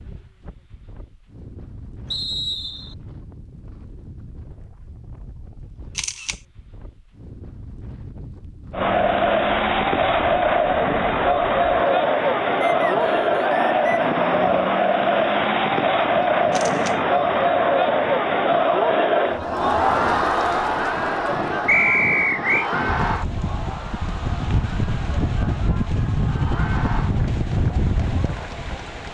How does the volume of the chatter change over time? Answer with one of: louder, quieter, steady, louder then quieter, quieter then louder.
quieter.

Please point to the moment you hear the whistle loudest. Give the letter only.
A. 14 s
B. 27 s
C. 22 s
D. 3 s
C.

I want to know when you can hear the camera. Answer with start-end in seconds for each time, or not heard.
6.0-6.4, 16.5-17.0.